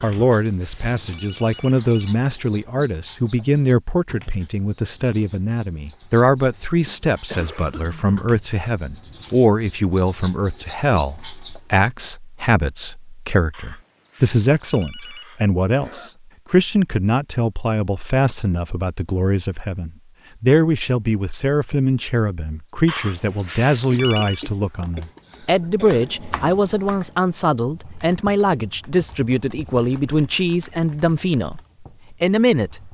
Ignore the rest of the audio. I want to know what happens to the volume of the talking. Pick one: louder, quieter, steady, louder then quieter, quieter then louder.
steady.